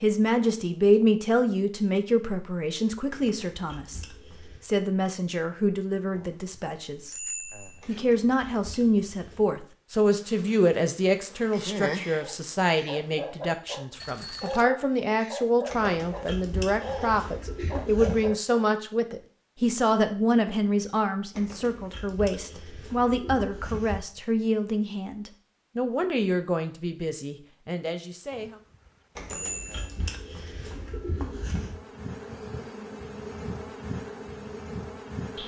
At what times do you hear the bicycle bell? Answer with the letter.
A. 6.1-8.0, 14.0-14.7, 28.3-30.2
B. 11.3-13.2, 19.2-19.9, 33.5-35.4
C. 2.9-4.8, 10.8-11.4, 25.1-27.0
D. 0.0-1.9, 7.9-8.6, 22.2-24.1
A.